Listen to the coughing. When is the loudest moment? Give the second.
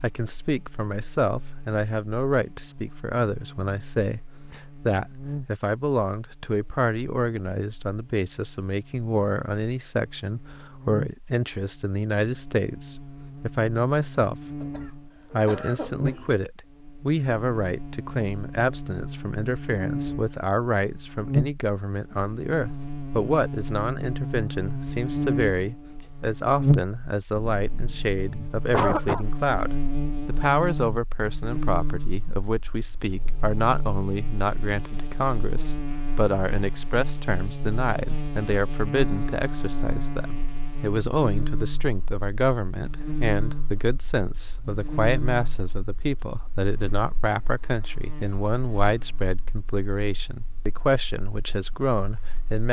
29 s.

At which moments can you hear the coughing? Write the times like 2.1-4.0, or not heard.
14.6-16.3, 27.6-29.2.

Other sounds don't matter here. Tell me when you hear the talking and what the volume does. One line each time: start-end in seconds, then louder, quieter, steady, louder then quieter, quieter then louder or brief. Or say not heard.
0.0-52.6 steady.